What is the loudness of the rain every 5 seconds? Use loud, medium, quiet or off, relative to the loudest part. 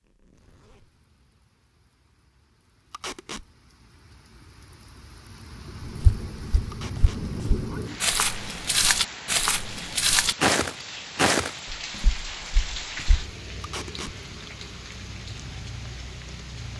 quiet, loud, loud, loud.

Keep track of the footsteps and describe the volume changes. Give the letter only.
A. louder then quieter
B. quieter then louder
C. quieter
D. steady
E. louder
A.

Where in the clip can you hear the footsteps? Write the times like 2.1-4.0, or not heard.
6.0-13.3.